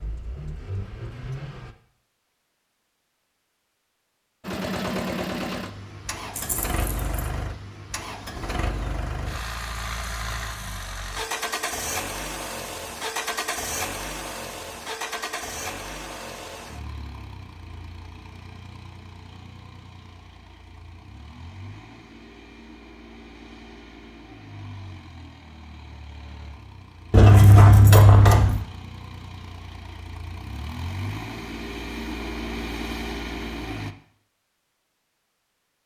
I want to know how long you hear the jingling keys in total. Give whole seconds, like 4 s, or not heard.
2 s.